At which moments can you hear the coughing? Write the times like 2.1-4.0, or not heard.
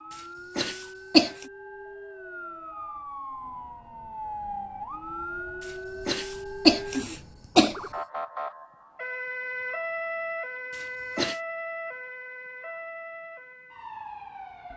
0.1-1.3, 5.6-7.8, 10.7-11.4.